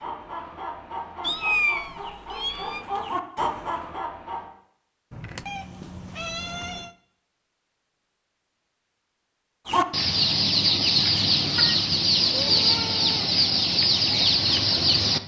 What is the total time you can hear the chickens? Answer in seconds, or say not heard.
10 s.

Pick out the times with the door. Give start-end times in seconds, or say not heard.
not heard.